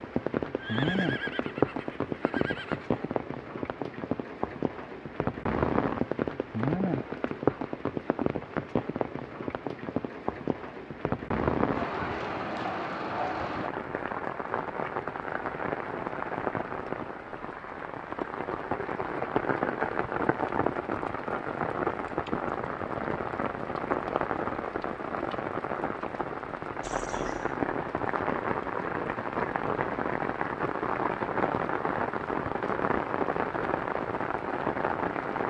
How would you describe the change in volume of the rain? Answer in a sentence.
The volume of the rain stays about the same.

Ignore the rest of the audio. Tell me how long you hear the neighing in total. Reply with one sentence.
You can hear the neighing for 3 seconds altogether.